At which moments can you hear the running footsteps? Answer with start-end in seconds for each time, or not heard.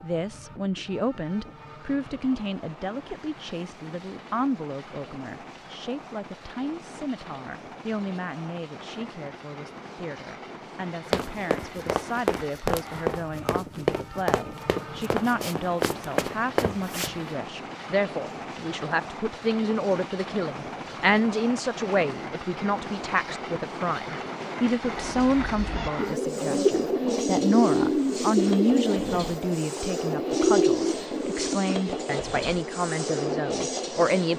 11.1-17.1.